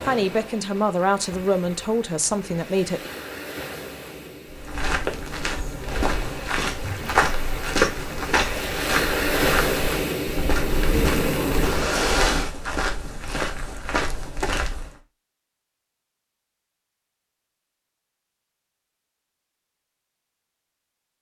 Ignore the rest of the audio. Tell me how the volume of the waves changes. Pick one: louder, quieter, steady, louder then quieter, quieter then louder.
louder.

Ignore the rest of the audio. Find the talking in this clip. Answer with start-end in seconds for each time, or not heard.
0.0-3.1.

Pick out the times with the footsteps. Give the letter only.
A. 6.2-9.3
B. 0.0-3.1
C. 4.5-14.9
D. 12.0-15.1
C.